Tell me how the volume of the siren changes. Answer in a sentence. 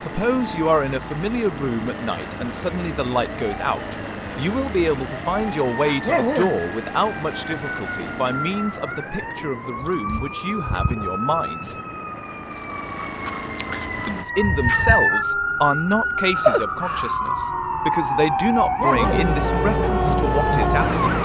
The volume of the siren goes up.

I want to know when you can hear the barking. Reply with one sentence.
The barking can be heard from 6.0 to 6.6 s and from 18.8 to 19.2 s.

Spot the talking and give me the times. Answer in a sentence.
You can hear the talking from 0.0 to 11.8 s and from 14.1 to 21.1 s.